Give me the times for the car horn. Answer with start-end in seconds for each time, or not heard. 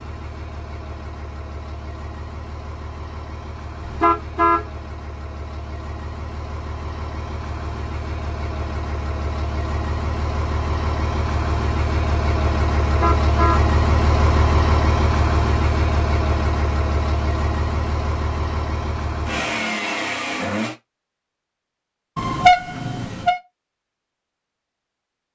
3.8-4.7, 12.8-13.7, 22.1-23.4.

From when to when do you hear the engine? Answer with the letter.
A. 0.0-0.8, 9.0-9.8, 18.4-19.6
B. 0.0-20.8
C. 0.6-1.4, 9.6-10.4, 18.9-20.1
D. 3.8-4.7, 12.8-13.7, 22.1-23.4
B.